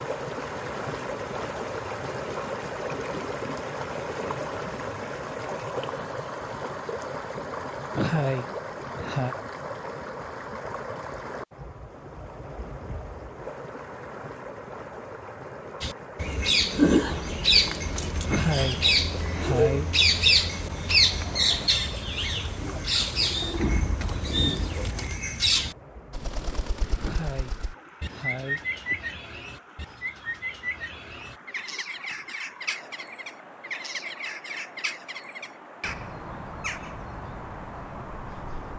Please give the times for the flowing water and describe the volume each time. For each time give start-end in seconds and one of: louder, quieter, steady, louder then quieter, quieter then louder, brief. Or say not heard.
0.0-38.7 quieter.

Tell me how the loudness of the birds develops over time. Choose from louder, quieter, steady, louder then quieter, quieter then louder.
quieter.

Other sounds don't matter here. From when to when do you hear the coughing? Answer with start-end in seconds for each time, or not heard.
8.0-9.3, 18.2-19.9, 27.0-29.1.